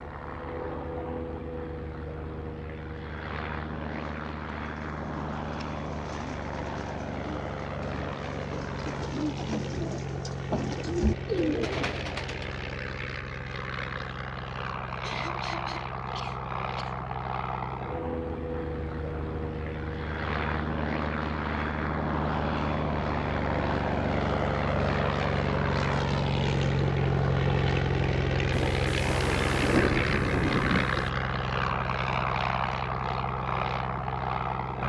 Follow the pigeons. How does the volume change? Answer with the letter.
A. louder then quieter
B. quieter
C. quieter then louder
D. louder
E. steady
D.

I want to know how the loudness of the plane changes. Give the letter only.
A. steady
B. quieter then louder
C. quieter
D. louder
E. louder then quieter
D.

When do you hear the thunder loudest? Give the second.
30 s.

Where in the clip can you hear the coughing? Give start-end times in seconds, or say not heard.
15.0-17.0.